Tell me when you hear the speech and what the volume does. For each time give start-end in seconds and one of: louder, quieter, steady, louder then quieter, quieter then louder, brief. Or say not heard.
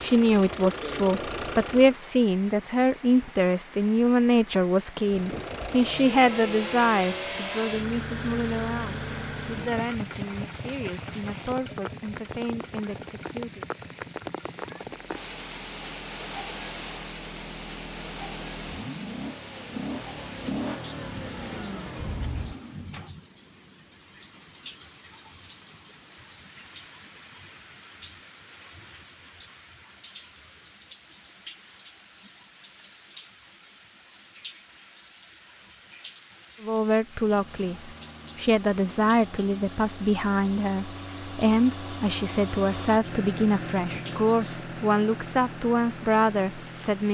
0.0-13.7 quieter
36.6-47.0 steady.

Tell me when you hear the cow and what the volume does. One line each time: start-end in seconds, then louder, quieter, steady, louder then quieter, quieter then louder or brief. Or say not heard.
not heard.